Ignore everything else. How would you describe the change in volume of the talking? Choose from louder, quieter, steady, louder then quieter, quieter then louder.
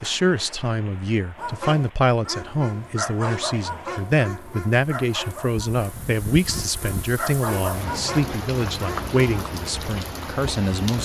steady.